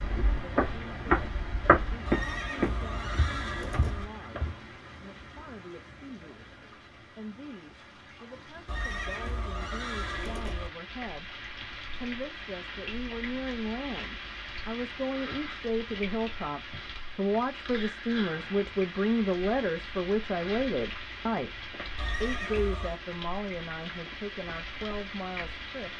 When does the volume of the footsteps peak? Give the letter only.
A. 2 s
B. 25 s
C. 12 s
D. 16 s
A.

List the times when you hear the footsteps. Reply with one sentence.
You can hear the footsteps from 0.0 to 4.7 s.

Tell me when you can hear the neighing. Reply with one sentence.
The neighing can be heard from 2.0 to 4.0 s, from 8.7 to 10.7 s and from 21.9 to 23.0 s.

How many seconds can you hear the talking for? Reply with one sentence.
The talking can be heard for 26 seconds in total.